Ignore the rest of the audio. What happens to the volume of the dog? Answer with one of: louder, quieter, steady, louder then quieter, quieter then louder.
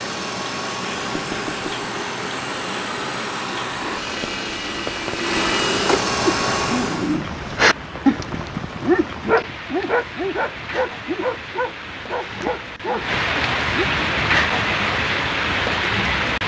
quieter.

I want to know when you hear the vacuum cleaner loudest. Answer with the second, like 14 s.
6 s.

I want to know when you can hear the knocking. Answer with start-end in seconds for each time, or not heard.
1.1-1.9.